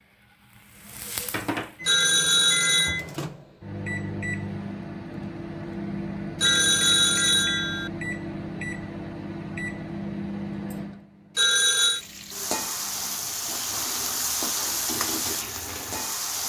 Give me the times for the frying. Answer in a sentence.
You can hear the frying from 0.0 to 3.1 s and from 11.9 to 16.4 s.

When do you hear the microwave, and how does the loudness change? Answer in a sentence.
The microwave can be heard from 1.8 to 13.3 s, getting quieter.